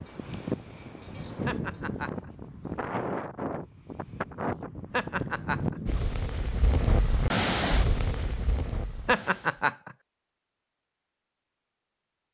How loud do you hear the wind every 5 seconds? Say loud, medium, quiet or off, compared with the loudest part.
loud, loud, off.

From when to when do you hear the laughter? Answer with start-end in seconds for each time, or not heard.
1.4-2.3, 4.9-5.8, 9.1-9.9.